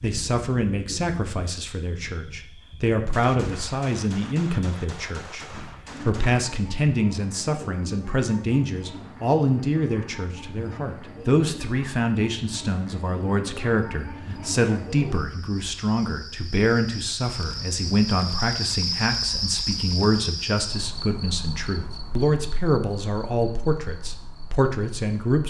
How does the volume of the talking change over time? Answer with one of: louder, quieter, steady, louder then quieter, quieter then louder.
steady.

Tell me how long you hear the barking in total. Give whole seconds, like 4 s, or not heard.
not heard.